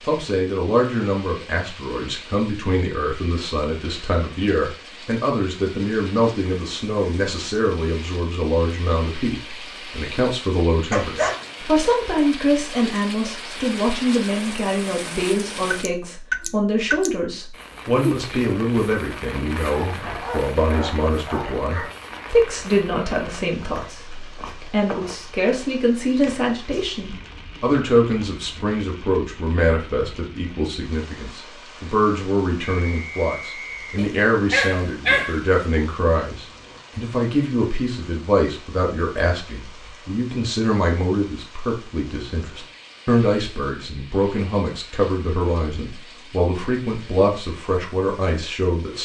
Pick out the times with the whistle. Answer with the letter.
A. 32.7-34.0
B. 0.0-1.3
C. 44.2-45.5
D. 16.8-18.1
A.